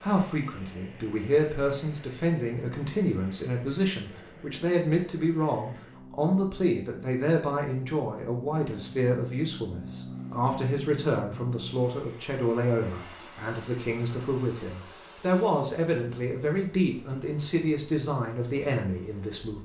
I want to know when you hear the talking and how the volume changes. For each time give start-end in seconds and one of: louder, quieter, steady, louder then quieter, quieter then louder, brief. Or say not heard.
0.0-19.6 steady.